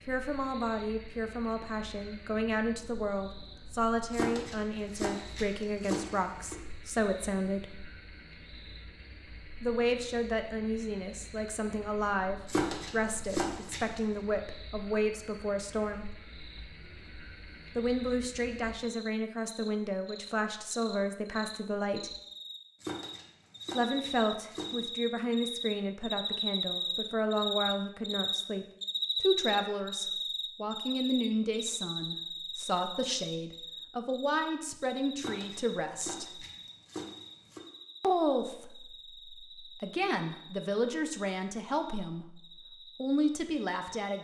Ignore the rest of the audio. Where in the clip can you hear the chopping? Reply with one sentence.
You can hear the chopping from 4.1 to 6.5 s, from 12.4 to 14.0 s, from 22.8 to 24.8 s and from 35.1 to 37.6 s.